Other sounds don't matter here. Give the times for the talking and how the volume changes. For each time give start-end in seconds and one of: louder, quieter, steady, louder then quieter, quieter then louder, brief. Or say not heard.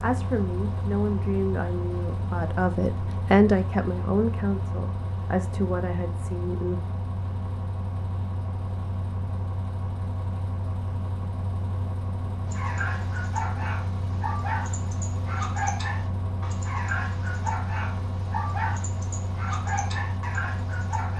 0.0-6.8 louder then quieter.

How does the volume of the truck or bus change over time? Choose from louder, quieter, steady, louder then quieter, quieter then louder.
steady.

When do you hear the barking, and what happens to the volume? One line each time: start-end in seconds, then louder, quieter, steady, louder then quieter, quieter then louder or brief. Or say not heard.
12.4-21.1 steady.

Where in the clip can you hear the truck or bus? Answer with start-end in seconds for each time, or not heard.
0.0-21.1.